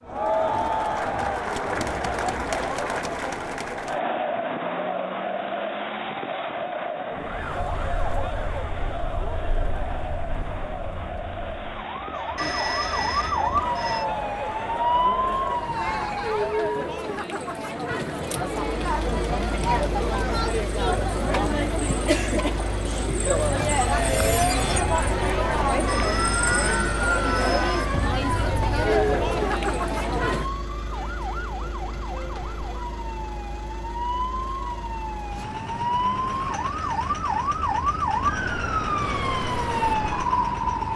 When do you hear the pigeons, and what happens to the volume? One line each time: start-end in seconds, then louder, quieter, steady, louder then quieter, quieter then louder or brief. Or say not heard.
not heard.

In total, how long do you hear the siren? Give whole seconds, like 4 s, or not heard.
27 s.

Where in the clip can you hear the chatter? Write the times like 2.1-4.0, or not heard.
0.0-30.5.